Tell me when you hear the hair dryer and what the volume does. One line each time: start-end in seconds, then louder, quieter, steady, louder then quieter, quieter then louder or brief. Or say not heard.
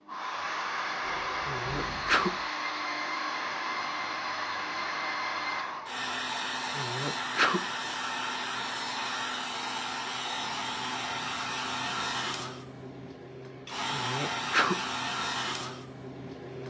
0.0-16.6 steady.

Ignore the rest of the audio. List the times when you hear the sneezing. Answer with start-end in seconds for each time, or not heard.
1.4-2.3, 6.8-7.6, 13.9-14.8.